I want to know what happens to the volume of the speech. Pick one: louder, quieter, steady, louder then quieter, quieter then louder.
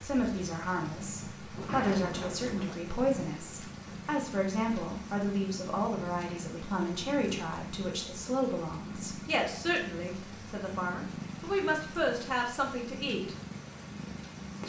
steady.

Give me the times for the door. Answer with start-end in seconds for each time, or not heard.
1.6-2.9.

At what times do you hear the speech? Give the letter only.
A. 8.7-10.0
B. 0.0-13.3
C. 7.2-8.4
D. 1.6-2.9
B.